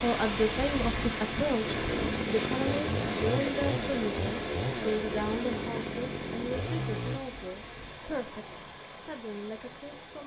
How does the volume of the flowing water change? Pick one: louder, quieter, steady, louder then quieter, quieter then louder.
quieter.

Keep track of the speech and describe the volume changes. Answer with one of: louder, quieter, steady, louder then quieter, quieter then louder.
quieter.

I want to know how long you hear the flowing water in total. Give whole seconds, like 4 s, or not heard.
10 s.